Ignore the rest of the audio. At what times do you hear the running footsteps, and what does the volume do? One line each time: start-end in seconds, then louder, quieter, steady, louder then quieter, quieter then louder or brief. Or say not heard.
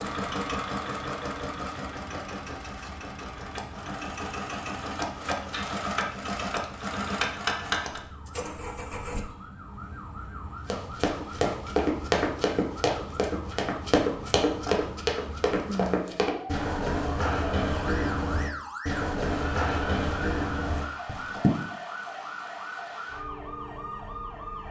10.7-21.8 steady.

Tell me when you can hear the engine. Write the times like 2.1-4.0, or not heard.
0.0-9.2.